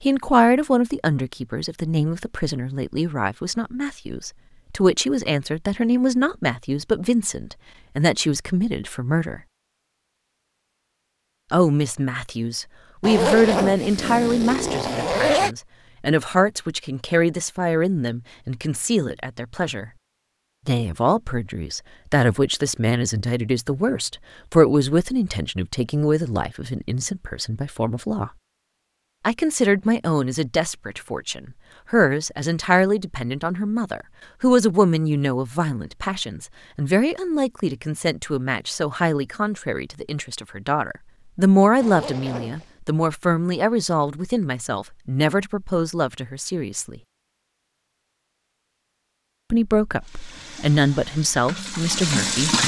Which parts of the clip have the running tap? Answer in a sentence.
The running tap can be heard from 50.0 to 52.6 s.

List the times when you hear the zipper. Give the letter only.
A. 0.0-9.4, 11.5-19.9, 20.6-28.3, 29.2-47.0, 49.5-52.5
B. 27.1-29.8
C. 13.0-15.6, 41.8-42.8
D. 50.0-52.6
C.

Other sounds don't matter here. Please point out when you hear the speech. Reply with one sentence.
The speech can be heard from 0.0 to 9.4 s, from 11.5 to 19.9 s, from 20.6 to 28.3 s, from 29.2 to 47.0 s and from 49.5 to 52.5 s.